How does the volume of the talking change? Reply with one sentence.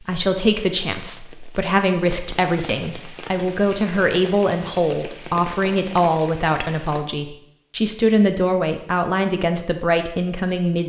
The volume of the talking stays about the same.